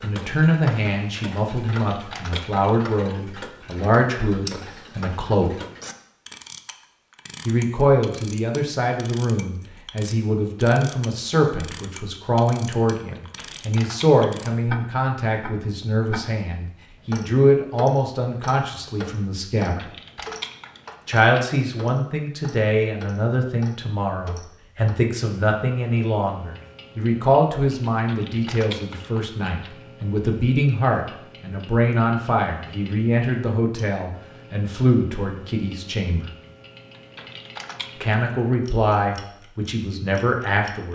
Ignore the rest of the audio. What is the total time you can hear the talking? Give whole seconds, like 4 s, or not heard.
36 s.